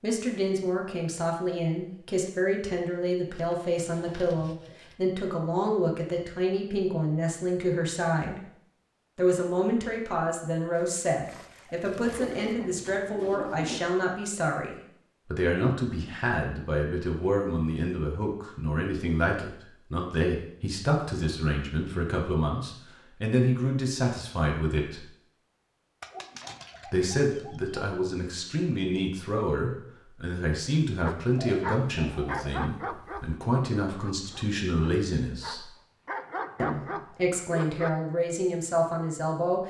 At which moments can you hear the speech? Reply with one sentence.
The speech can be heard from 0.0 to 8.4 s, from 9.2 to 25.1 s, from 26.9 to 35.7 s and from 36.5 to 39.6 s.